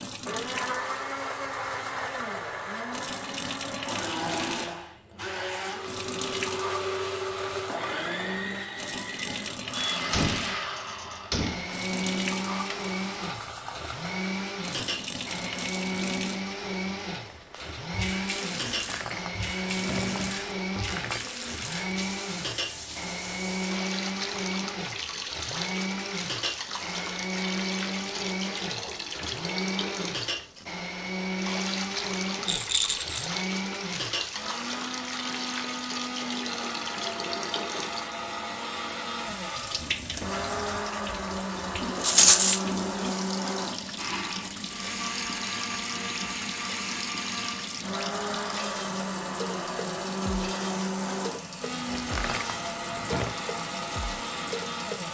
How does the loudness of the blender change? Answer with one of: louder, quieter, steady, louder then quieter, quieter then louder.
steady.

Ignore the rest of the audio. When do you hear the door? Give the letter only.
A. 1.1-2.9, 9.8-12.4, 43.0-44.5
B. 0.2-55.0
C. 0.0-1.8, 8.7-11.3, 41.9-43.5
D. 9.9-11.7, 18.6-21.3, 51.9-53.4
D.